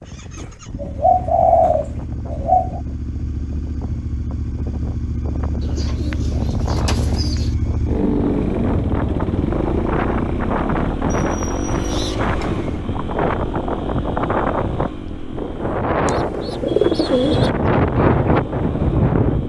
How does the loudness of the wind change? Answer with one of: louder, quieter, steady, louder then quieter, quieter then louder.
louder.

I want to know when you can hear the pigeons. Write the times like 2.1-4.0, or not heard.
0.3-2.8, 5.6-7.5, 11.1-12.8, 16.1-17.5.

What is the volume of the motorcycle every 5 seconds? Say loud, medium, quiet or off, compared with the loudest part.
medium, loud, loud, medium.